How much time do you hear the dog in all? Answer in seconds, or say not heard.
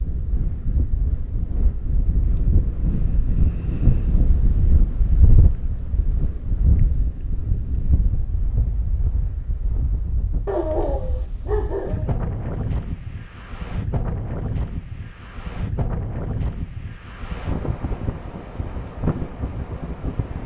2 s.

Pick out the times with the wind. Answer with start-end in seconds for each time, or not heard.
0.0-20.4.